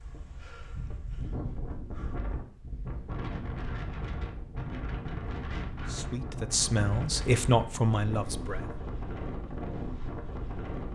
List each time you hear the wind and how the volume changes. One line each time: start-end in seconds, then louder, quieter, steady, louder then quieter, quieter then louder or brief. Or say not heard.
0.0-10.9 steady.